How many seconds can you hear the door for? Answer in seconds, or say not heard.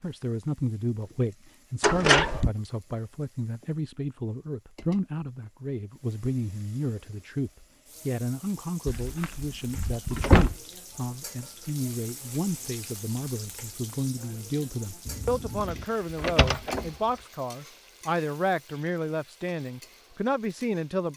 4 s.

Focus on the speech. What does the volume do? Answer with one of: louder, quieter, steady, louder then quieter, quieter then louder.
steady.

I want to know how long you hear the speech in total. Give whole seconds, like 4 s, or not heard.
21 s.